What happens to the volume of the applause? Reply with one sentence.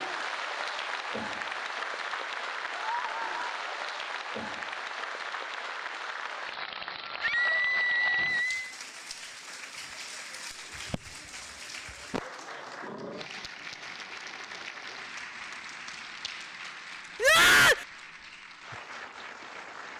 The volume of the applause goes down.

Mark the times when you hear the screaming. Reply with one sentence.
You can hear the screaming from 2.7 to 3.6 s, from 7.2 to 8.6 s and from 17.2 to 17.9 s.